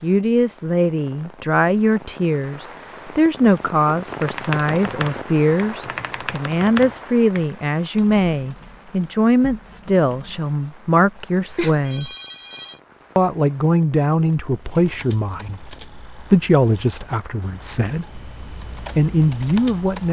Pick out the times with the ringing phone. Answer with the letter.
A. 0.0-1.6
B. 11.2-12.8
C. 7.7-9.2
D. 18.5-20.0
B.